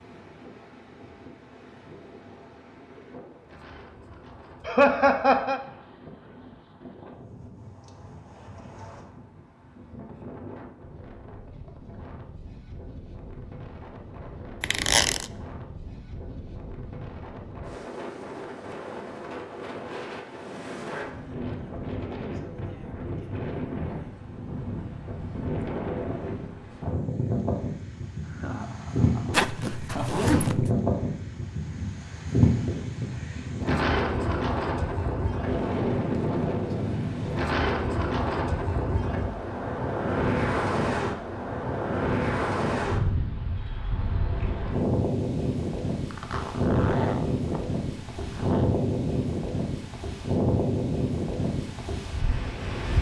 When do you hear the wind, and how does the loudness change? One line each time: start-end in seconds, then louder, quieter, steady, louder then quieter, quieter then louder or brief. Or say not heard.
0.0-52.9 louder.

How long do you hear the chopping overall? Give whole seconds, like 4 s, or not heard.
not heard.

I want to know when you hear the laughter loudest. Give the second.
5 s.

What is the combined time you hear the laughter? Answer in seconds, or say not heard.
3 s.